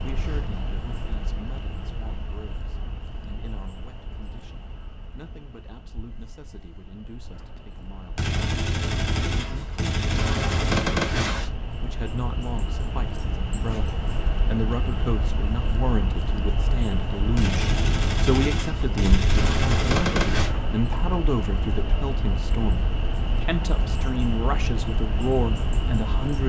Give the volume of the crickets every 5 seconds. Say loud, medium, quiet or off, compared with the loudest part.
medium, quiet, loud, loud, loud, loud.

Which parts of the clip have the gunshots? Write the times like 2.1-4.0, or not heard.
8.2-11.4, 17.4-20.5.